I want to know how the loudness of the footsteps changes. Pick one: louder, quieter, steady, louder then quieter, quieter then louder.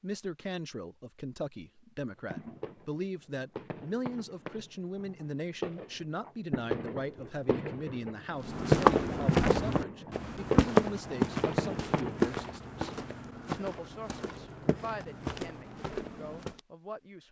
quieter.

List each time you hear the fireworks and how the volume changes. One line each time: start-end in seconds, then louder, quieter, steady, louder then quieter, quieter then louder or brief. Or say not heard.
2.2-12.3 louder.